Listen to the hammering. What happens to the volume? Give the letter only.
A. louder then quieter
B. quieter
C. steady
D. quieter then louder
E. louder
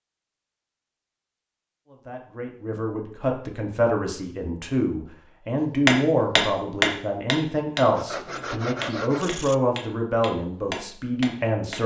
D.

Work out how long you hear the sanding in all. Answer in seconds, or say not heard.
2 s.